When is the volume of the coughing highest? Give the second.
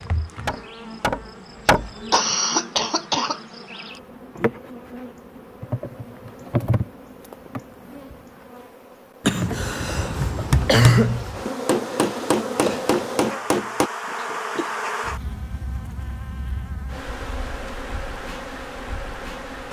11 s.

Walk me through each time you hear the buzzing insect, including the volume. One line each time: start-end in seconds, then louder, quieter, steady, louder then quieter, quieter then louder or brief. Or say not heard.
0.0-19.6 louder then quieter.